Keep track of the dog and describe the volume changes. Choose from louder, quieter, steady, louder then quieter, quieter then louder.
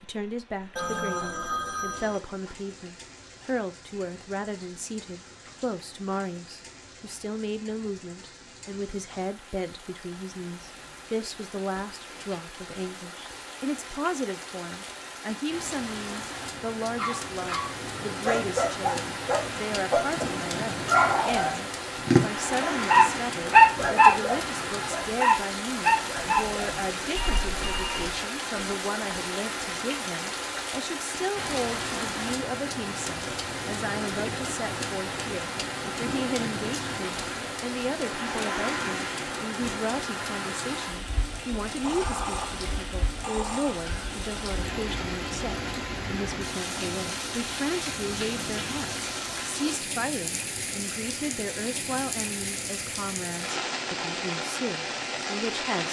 louder then quieter.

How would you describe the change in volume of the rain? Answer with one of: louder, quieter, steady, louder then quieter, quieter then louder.
louder.